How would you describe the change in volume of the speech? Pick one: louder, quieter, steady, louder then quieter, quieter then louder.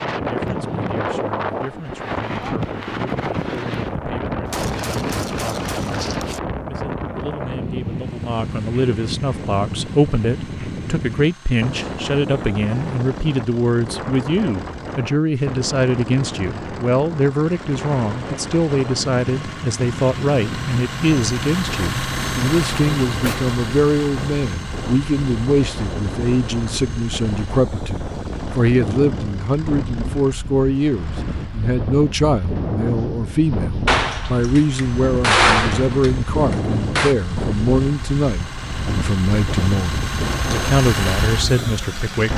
louder.